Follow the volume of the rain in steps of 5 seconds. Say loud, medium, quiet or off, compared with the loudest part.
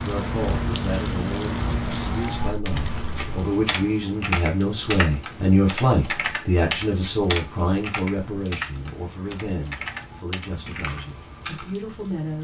loud, quiet, quiet.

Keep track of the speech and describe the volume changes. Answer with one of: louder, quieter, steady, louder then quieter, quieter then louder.
louder then quieter.